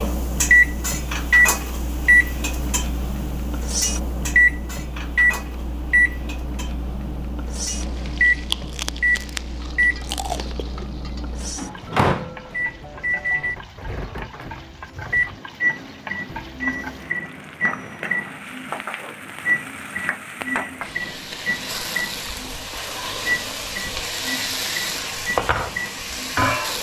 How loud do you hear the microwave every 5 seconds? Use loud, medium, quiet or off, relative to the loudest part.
loud, loud, medium, medium, medium, quiet.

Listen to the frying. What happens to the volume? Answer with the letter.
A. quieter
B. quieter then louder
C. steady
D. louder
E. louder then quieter
B.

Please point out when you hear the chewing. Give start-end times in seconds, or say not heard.
8.3-11.0.